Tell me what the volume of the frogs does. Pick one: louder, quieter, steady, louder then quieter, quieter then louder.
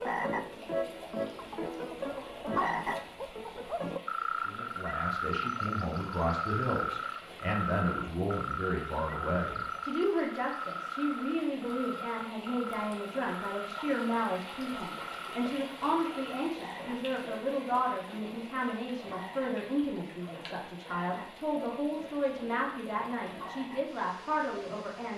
quieter.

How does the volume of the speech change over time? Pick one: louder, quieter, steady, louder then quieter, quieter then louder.
steady.